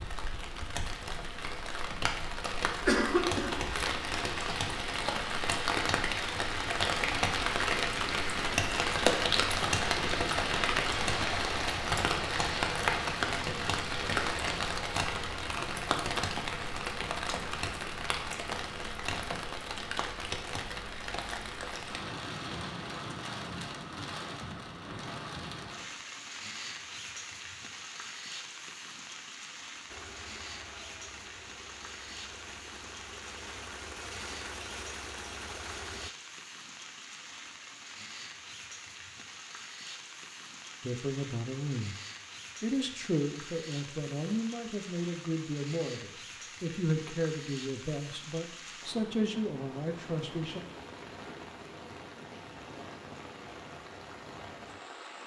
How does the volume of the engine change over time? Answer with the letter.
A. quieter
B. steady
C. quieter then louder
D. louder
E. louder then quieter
D.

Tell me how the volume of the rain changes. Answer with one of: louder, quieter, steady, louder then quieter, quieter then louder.
quieter.